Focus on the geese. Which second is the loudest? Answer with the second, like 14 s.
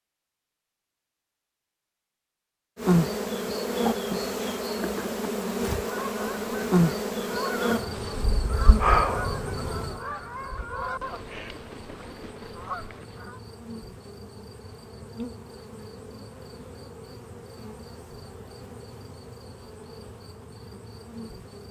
9 s.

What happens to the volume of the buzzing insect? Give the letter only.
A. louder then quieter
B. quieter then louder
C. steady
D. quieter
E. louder
D.